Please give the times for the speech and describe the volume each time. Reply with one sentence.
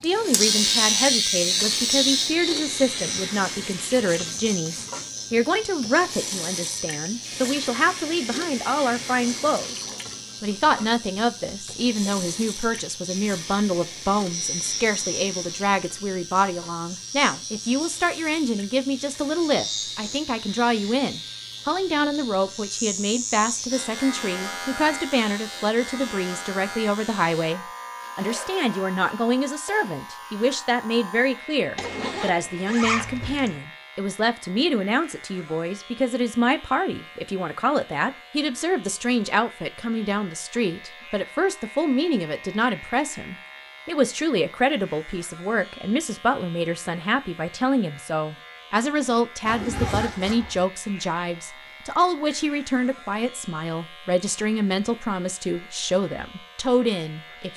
The speech can be heard from 0.0 to 57.5 s, at a steady volume.